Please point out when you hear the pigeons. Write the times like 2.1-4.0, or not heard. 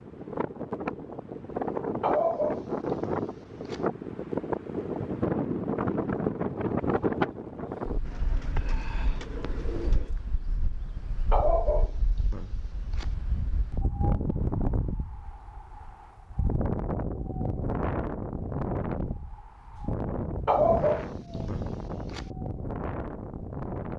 8.1-10.2.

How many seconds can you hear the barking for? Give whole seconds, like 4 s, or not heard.
5 s.